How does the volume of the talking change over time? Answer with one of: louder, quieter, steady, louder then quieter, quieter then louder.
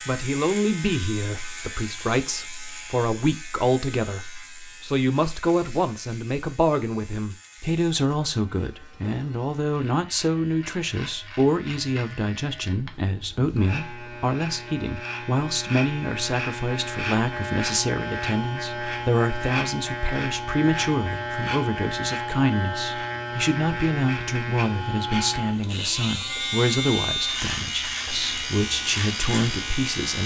steady.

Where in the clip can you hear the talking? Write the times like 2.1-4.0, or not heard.
0.1-30.2.